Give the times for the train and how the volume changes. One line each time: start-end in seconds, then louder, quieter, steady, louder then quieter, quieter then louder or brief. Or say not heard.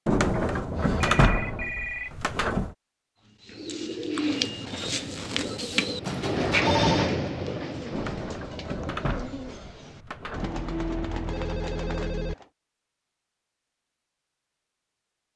4.2-8.5 louder then quieter.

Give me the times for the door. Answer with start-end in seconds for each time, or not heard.
0.1-2.8, 7.9-10.5.